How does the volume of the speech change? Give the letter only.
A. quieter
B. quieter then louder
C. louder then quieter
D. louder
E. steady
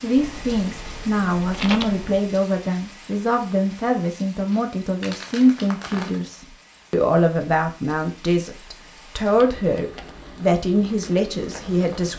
E.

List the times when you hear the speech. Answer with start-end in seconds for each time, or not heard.
0.0-12.1.